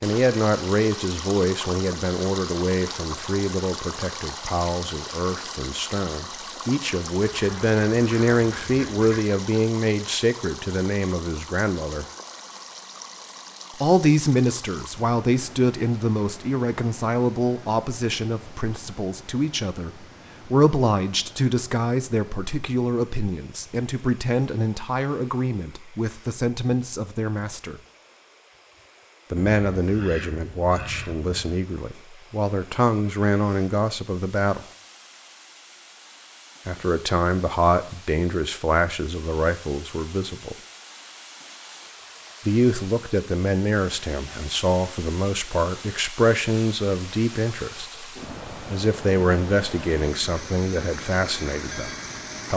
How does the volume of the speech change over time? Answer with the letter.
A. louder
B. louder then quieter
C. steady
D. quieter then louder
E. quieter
C.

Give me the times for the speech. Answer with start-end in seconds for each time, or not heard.
0.0-12.1, 13.8-27.8, 29.3-34.6, 36.6-40.5, 42.5-52.5.